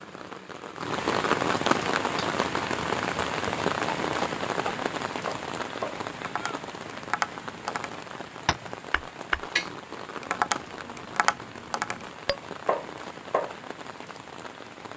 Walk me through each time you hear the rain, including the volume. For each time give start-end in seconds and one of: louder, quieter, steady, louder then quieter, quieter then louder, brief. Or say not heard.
0.0-14.9 quieter.